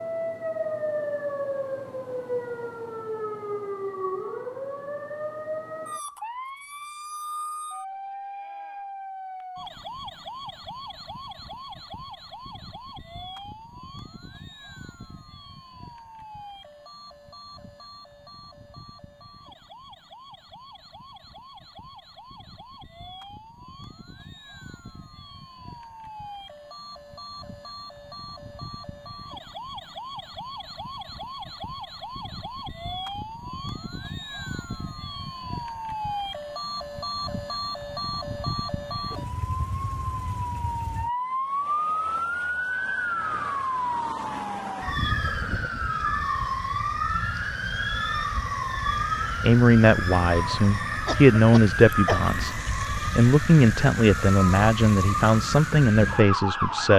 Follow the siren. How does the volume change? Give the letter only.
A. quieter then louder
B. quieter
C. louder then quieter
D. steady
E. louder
A.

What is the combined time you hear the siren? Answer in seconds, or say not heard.
57 s.